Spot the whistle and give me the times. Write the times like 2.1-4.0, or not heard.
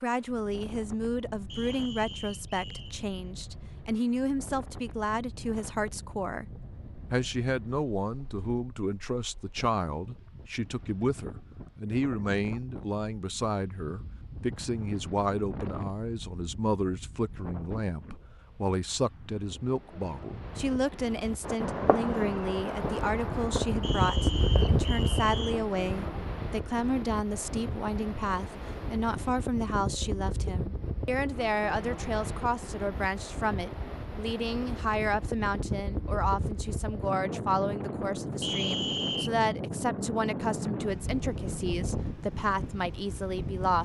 1.4-3.0, 23.8-25.6, 38.4-39.3.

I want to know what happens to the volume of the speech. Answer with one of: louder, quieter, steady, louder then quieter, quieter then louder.
steady.